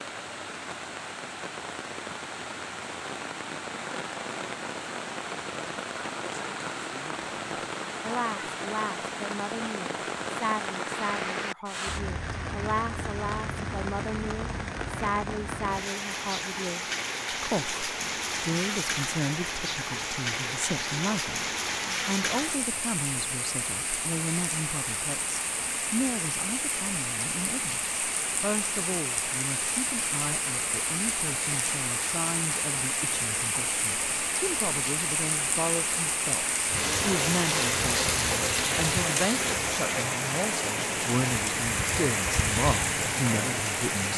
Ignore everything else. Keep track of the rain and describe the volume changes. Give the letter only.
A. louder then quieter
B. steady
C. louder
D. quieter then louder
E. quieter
C.